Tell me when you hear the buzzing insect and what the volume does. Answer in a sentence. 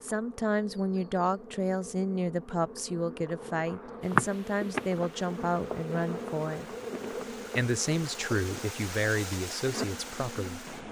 You can hear the buzzing insect from 0.0 to 10.8 s, getting louder then quieter.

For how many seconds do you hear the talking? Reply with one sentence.
You can hear the talking for 10 seconds altogether.